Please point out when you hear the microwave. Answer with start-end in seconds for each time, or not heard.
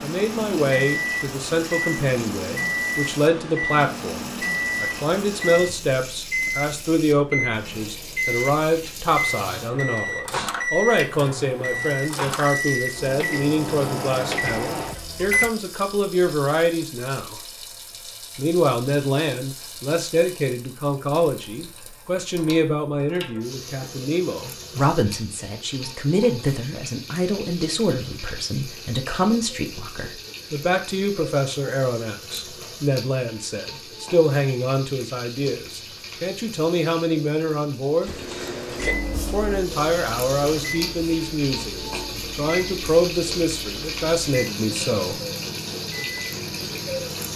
0.0-15.6, 38.0-47.3.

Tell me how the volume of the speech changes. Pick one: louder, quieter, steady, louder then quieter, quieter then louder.
steady.